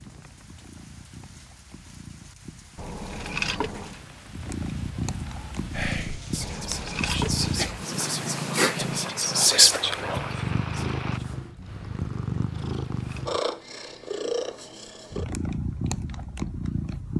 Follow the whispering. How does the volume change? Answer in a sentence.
The volume of the whispering goes up, then down.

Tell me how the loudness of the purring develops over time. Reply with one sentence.
The loudness of the purring goes up.